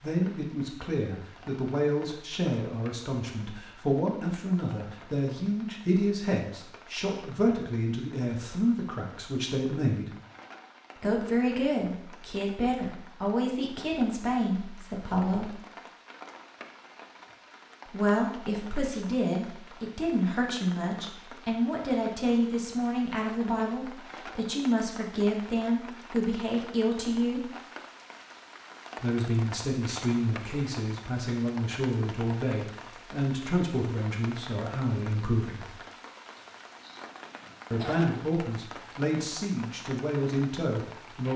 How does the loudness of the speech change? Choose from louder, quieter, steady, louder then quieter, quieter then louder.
steady.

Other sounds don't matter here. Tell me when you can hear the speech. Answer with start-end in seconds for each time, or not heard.
0.0-10.1, 11.0-15.6, 17.9-27.6, 29.0-35.8, 37.7-41.3.